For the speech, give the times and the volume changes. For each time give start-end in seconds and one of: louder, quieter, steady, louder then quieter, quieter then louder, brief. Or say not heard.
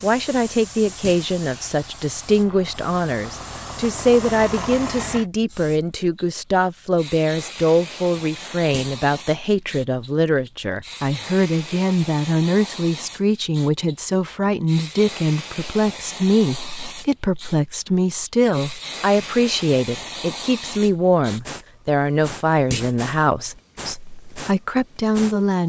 0.0-25.6 steady.